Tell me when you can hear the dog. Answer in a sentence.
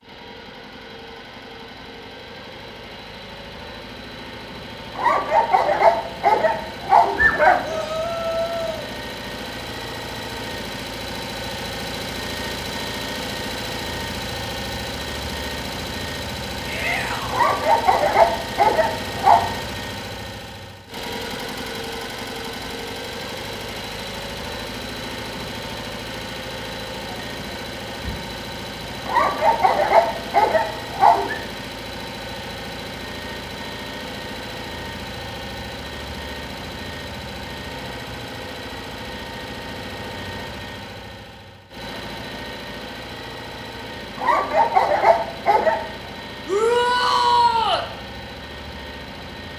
The dog can be heard from 5.0 to 7.8 s, from 17.3 to 19.4 s, from 29.1 to 31.4 s and from 44.1 to 45.8 s.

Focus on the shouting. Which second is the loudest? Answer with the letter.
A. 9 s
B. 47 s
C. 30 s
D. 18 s
B.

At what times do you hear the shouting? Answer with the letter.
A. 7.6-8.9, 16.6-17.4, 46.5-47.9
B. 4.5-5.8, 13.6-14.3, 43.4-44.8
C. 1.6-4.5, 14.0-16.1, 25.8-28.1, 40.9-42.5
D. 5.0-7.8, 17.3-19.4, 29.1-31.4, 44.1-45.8
A.